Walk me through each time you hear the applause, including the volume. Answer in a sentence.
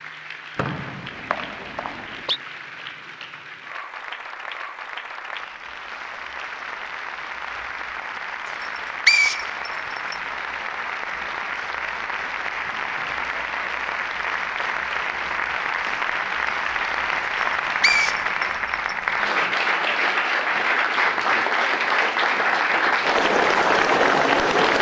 You can hear the applause from 0.0 to 24.7 s, getting louder.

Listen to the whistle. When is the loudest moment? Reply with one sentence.
The loudest moment of the whistle is at 9 seconds.